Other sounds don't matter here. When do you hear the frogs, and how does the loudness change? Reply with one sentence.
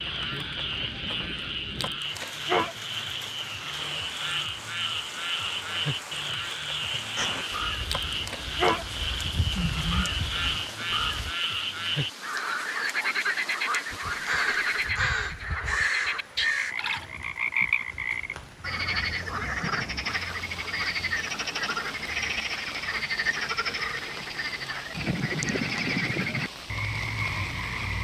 The frogs can be heard from 0.0 to 27.9 s, at a steady volume.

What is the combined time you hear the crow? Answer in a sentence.
The crow can be heard for 7 seconds in total.